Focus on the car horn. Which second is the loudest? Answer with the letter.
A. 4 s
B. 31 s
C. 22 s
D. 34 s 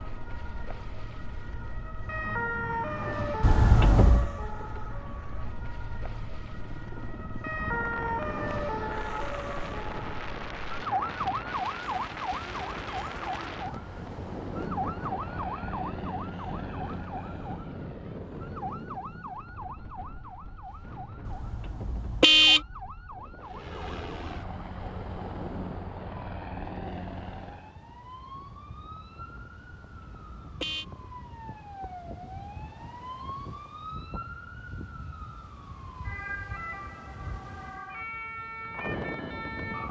C.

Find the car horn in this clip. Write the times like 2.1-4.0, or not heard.
3.4-4.3, 21.2-22.6, 29.8-30.9.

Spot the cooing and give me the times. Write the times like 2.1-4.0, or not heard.
not heard.